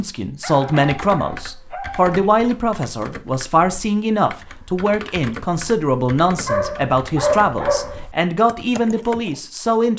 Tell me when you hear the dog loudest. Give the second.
7 s.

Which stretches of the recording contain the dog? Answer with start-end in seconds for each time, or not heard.
0.4-2.1, 6.5-8.1.